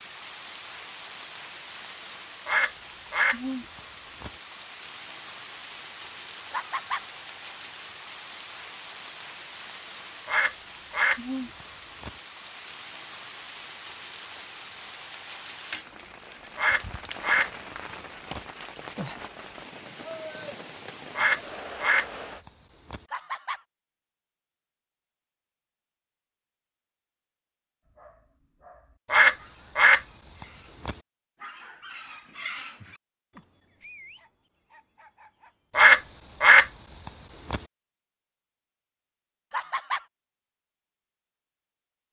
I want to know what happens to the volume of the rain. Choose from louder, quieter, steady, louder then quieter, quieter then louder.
steady.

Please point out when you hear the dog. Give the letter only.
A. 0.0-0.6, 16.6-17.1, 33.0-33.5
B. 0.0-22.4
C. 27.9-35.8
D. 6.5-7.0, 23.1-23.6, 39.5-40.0
C.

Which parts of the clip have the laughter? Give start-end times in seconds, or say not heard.
6.5-7.0, 23.1-23.6, 39.5-40.0.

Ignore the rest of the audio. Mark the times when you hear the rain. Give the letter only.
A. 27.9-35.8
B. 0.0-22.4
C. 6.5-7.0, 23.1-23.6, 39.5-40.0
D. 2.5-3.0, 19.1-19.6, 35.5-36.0
B.